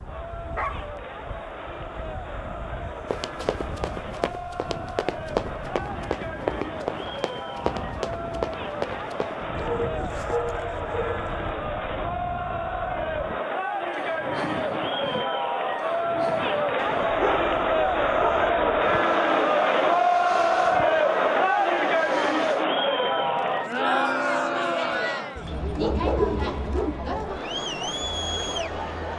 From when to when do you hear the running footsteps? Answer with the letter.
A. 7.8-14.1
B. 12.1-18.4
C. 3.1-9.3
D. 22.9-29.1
C.